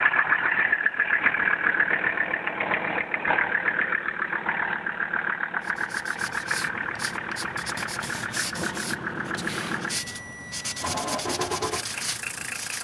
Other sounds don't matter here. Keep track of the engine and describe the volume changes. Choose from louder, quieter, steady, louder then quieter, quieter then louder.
quieter.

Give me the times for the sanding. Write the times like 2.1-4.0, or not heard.
5.6-12.7.